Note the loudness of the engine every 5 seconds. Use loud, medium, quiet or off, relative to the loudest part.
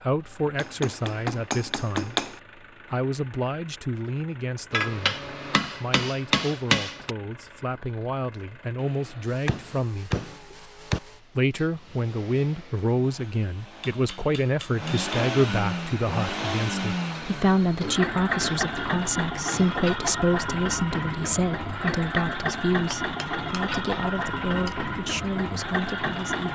quiet, quiet, quiet, loud, loud, loud.